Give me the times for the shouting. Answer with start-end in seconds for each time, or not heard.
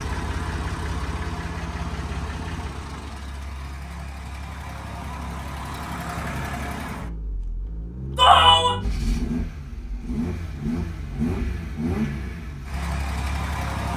8.2-8.8.